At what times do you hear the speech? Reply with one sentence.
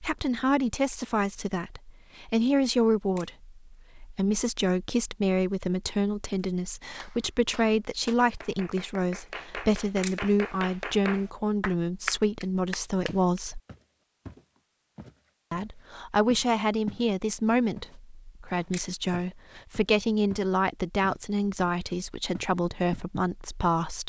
The speech can be heard from 0.0 to 13.6 s and from 15.5 to 24.0 s.